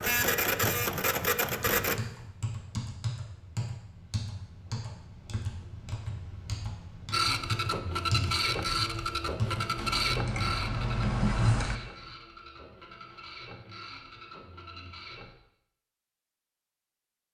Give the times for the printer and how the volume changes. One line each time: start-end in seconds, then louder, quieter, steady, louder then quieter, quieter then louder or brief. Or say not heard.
0.0-2.0 brief
7.1-15.3 quieter.